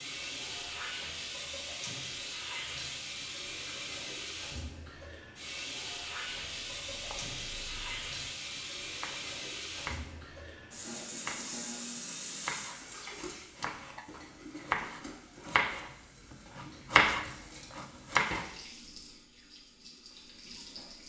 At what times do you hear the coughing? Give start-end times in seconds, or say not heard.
not heard.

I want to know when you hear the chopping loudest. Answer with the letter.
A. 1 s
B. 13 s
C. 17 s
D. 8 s
C.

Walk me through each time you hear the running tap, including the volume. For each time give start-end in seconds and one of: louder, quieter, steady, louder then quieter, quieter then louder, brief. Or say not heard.
0.0-21.0 quieter.